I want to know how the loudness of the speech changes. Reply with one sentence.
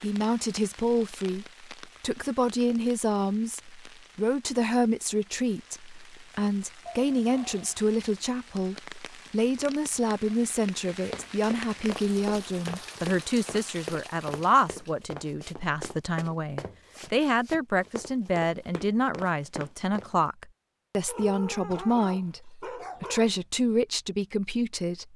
The loudness of the speech stays about the same.